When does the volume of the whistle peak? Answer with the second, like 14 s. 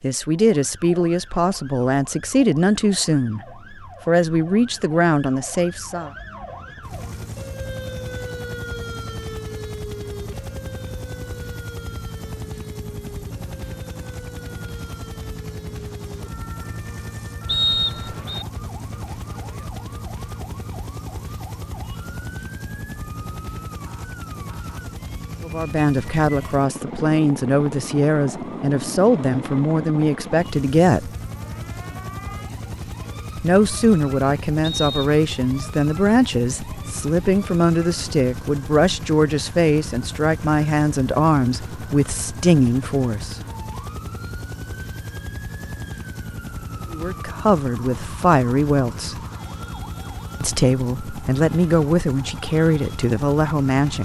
18 s.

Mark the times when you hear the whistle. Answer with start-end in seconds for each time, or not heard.
17.4-18.4, 34.6-35.1.